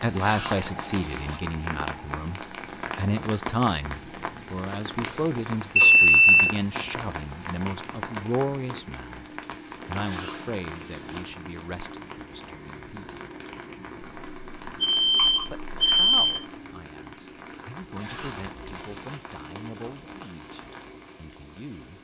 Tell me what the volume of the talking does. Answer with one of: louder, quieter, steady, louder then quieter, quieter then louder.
quieter.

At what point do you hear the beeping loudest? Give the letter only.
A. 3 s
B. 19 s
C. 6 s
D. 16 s
C.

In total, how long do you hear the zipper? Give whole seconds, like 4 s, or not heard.
4 s.